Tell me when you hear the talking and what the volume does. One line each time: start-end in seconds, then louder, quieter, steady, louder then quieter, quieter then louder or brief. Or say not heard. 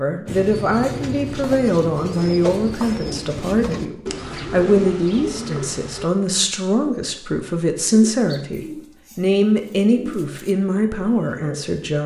0.0-12.0 steady.